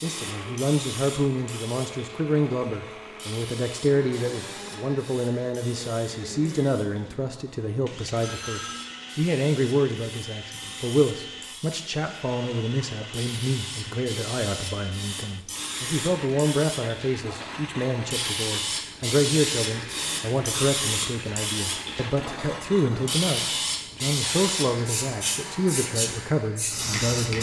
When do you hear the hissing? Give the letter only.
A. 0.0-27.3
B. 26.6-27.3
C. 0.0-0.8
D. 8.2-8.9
A.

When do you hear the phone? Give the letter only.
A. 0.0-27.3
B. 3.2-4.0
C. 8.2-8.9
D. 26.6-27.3
C.